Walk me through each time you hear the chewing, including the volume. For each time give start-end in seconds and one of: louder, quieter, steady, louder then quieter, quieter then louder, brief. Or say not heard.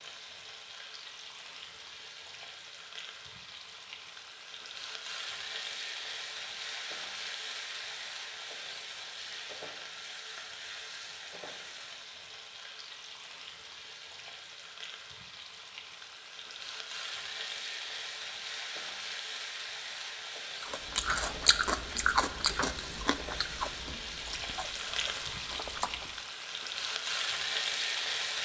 20.6-26.2 quieter.